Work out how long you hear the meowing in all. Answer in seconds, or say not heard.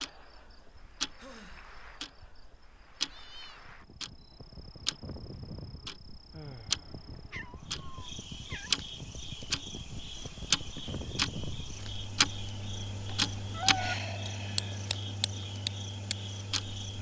3 s.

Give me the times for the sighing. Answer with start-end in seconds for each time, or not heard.
1.1-1.8, 6.3-7.1, 13.8-14.8.